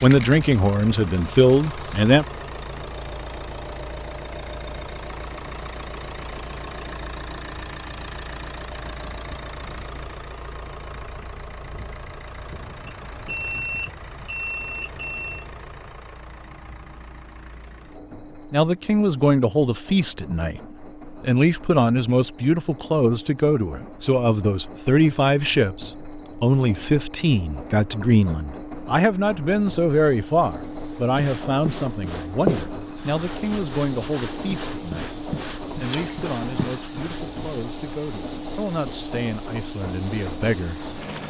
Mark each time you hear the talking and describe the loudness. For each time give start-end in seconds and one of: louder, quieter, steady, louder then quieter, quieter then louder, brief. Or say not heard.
0.0-2.2 brief
18.5-41.0 quieter.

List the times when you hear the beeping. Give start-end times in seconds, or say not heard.
12.8-15.4.